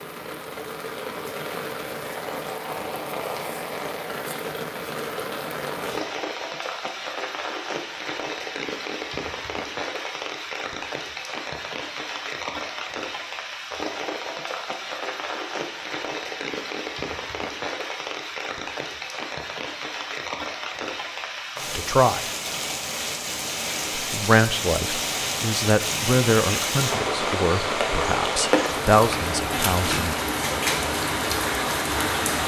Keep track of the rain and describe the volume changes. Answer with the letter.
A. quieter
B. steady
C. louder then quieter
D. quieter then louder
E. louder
E.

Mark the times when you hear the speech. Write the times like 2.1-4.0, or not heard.
21.8-22.2, 23.9-30.1.